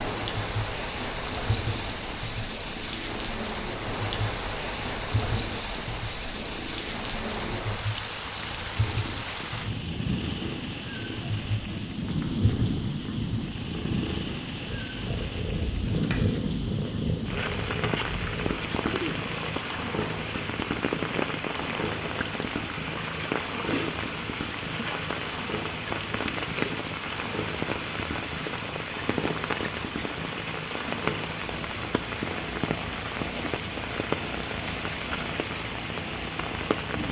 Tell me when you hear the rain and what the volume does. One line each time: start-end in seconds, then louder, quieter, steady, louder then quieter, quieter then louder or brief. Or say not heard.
0.0-37.0 steady.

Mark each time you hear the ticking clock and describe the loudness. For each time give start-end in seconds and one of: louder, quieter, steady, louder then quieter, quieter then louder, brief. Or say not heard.
not heard.